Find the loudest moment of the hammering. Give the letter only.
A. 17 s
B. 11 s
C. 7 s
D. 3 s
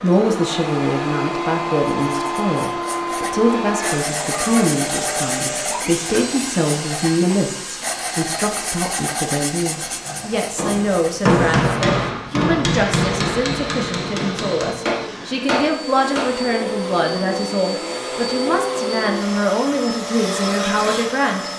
B.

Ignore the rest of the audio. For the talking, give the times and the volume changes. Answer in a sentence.
The talking can be heard from 0.0 to 21.5 s, at a steady volume.